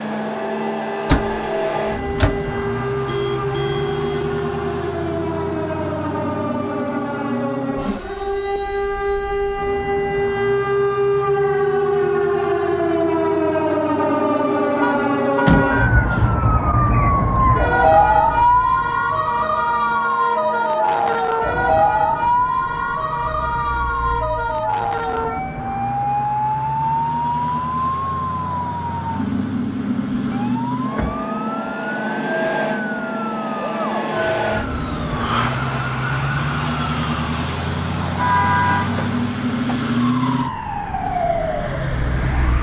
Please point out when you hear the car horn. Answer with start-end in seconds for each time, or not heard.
3.0-4.3, 14.8-15.9, 38.1-39.4.